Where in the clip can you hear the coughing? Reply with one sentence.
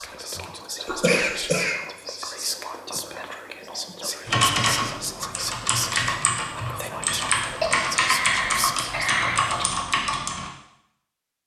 You can hear the coughing from 0.8 to 1.8 s and from 7.6 to 9.4 s.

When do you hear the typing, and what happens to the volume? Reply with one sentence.
You can hear the typing from 4.2 to 10.5 s, at a steady volume.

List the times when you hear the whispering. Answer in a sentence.
You can hear the whispering from 0.0 to 9.8 s.